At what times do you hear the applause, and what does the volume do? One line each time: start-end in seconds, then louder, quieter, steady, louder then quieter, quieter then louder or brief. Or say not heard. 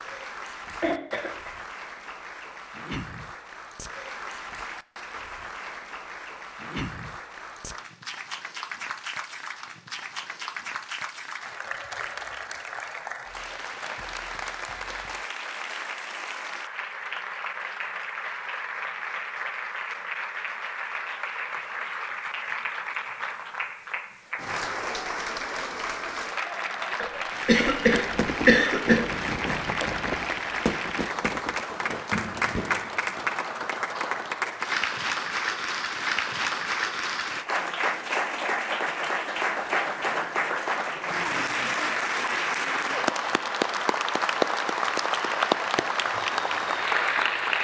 0.0-47.5 louder.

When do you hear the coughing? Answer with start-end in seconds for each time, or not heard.
0.7-1.5, 27.0-29.0.